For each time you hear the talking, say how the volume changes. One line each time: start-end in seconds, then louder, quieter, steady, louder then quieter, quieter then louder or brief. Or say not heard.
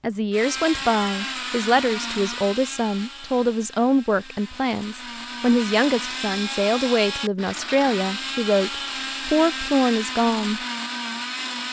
0.0-10.6 steady.